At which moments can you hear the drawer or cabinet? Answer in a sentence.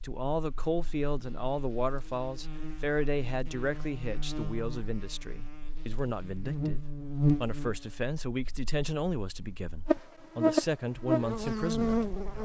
The drawer or cabinet can't be heard in this clip.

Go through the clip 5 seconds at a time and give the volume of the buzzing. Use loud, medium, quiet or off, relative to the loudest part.
quiet, medium, loud.